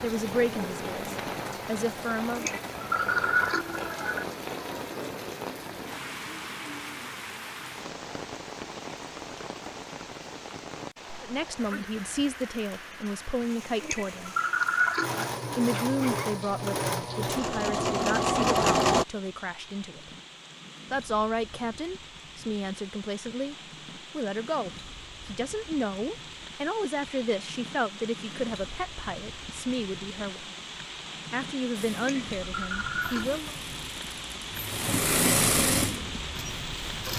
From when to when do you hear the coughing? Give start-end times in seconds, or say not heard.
2.4-4.2, 13.8-15.3, 31.9-33.4.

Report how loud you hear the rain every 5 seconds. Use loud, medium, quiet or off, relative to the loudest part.
loud, loud, medium, medium, medium, medium, loud, loud.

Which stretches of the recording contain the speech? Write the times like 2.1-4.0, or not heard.
0.0-2.5, 11.2-14.3, 15.6-20.1, 20.9-23.6, 24.1-30.6, 31.3-33.5.